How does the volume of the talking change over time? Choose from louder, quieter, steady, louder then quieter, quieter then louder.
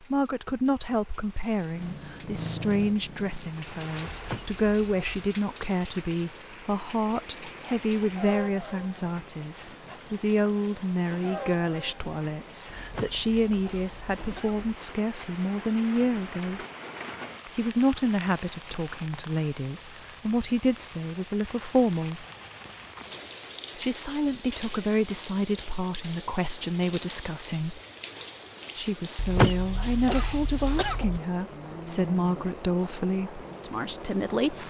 steady.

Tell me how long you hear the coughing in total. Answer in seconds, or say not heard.
5 s.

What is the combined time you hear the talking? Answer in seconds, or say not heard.
31 s.